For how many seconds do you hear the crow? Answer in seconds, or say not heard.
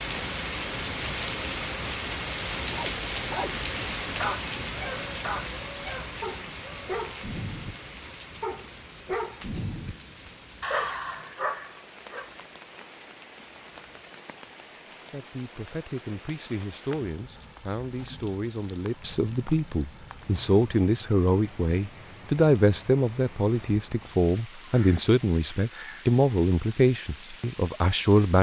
not heard.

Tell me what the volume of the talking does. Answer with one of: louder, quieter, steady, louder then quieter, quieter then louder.
louder.